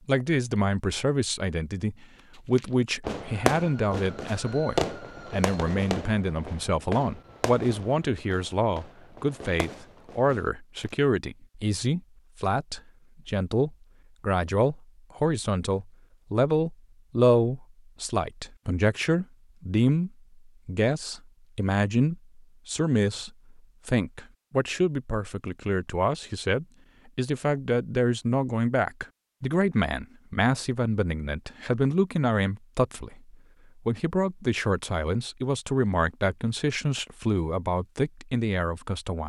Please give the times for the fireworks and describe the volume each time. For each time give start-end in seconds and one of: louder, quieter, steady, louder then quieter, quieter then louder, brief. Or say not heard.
2.5-10.9 quieter.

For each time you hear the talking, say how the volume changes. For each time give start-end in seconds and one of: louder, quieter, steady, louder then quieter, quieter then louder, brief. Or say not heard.
0.1-39.2 steady.